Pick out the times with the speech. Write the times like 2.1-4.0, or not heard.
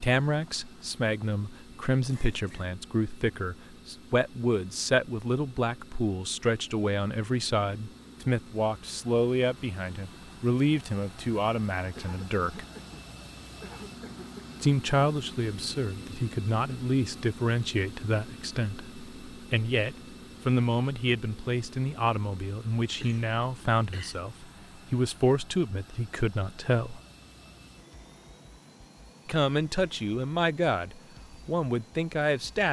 0.0-12.7, 14.6-27.0, 29.2-32.6.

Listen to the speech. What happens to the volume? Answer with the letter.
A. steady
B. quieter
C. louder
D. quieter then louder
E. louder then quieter
A.